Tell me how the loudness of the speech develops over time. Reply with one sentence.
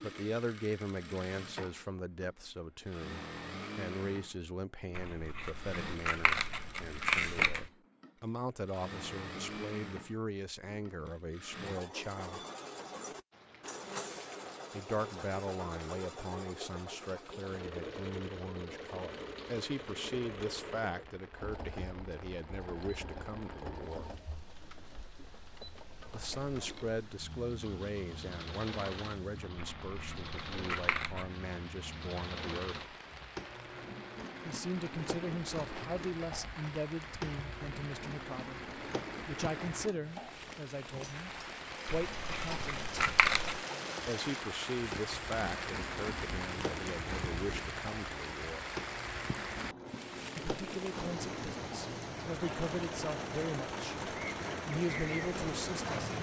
The loudness of the speech stays about the same.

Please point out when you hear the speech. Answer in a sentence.
You can hear the speech from 0.0 to 12.4 s, from 14.7 to 24.1 s, from 26.1 to 32.9 s, from 34.5 to 43.0 s, from 44.0 to 48.6 s and from 50.4 to 56.1 s.